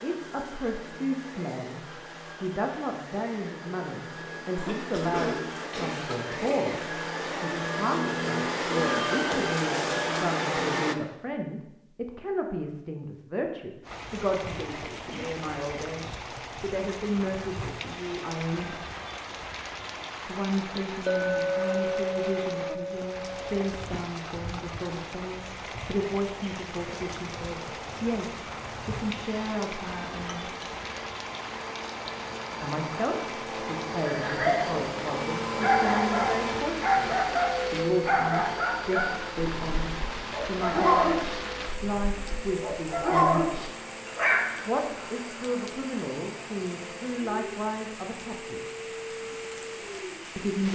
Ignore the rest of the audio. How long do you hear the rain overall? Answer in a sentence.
You can hear the rain for 37 seconds altogether.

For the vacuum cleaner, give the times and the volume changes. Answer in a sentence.
You can hear the vacuum cleaner from 0.0 to 10.9 s, getting louder; and from 26.9 to 50.5 s, getting louder then quieter.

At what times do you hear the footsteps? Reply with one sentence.
The footsteps can't be heard in this clip.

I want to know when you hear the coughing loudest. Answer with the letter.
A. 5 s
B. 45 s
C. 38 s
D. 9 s
A.